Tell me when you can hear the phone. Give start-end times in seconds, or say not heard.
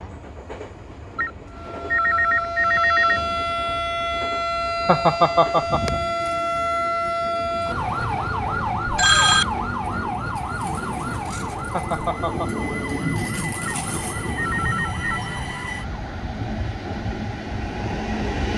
1.1-3.2, 8.9-9.4, 13.7-15.2.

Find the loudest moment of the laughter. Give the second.
5 s.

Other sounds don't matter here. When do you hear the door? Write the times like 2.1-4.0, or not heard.
not heard.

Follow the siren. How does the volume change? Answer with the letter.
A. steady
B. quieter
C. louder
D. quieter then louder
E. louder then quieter
B.